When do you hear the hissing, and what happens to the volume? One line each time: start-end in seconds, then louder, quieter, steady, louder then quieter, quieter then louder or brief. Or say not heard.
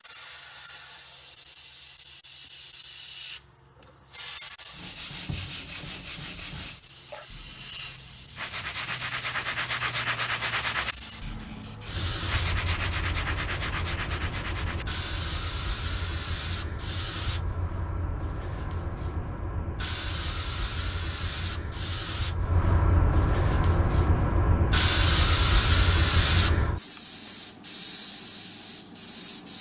0.0-29.5 louder.